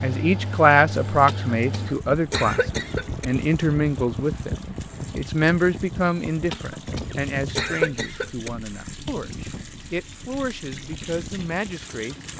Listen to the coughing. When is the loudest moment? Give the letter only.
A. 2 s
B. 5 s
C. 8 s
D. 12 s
C.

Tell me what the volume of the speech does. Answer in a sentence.
The loudness of the speech goes down.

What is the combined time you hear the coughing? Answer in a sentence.
The coughing can be heard for 4 seconds in total.